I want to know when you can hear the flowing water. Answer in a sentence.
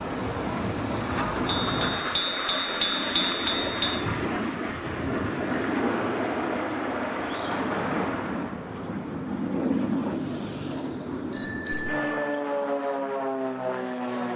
The flowing water can be heard from 0.0 to 8.7 s.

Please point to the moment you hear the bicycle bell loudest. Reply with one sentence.
The loudest moment of the bicycle bell is at 12 seconds.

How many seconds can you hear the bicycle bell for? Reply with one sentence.
You can hear the bicycle bell for 4 seconds altogether.